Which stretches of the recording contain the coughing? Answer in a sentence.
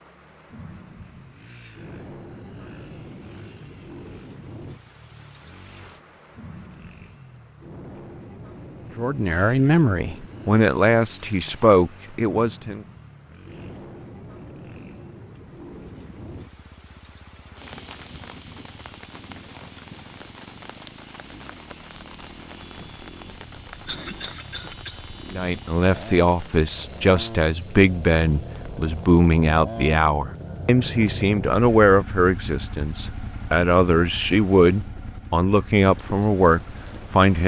The coughing can be heard from 23.9 to 25.0 s.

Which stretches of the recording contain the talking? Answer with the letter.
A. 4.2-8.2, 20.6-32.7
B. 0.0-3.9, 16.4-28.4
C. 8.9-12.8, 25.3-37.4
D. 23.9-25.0
C.